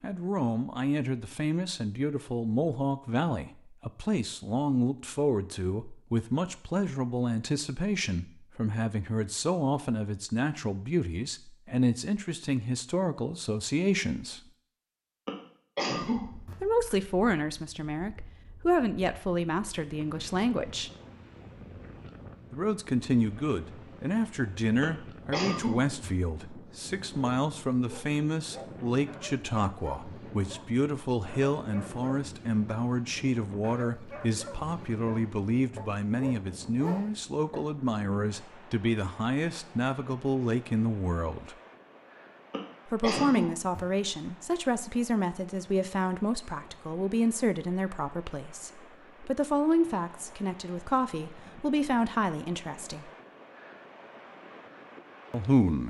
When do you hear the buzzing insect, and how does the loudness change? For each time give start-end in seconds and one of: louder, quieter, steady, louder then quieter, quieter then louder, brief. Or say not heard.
not heard.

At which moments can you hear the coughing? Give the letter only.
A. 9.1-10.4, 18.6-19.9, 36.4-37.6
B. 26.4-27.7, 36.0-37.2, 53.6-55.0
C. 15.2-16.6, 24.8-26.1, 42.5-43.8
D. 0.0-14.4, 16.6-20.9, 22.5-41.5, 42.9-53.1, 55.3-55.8
C.